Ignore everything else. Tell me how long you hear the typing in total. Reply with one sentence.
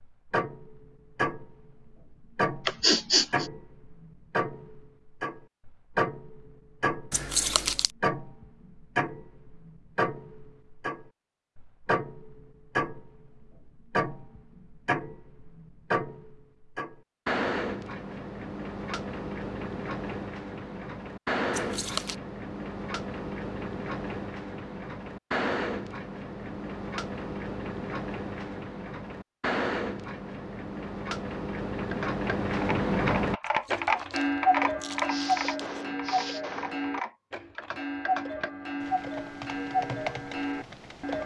You can hear the typing for 9 seconds altogether.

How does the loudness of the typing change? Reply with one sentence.
The loudness of the typing goes down.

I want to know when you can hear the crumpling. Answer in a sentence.
You can hear the crumpling from 7.1 to 7.9 s, from 21.5 to 22.1 s and from 33.5 to 35.8 s.